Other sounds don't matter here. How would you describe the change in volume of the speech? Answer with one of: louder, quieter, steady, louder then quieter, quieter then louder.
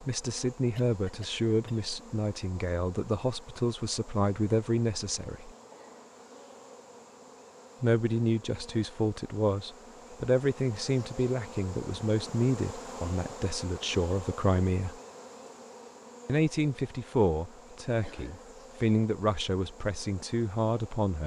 steady.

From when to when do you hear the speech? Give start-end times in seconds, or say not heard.
0.0-5.5, 7.8-14.9, 16.2-21.2.